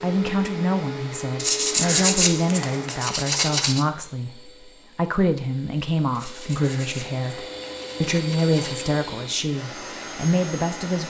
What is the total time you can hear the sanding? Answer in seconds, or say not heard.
5 s.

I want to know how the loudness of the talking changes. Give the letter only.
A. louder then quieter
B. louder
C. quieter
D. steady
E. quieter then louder
D.